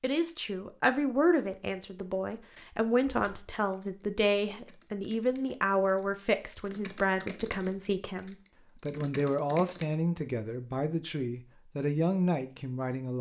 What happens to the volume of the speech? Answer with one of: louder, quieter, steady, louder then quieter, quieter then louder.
steady.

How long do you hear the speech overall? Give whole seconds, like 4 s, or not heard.
13 s.